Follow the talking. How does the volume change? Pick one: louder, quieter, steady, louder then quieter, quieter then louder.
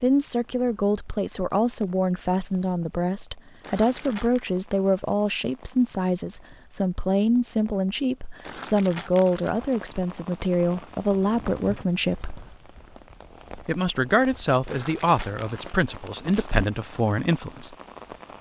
steady.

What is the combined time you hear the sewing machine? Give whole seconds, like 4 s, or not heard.
not heard.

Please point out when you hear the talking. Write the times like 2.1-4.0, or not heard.
0.0-12.4, 13.7-17.8.